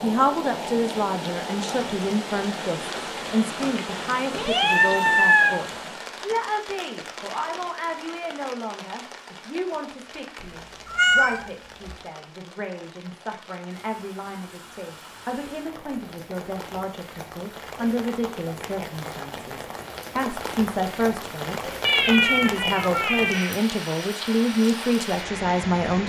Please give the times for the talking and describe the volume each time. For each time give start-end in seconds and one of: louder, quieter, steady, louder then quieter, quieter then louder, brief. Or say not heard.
0.0-26.0 quieter then louder.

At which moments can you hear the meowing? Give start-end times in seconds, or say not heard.
4.3-5.6, 10.4-11.9, 21.8-23.6.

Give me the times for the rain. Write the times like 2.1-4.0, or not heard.
0.0-26.0.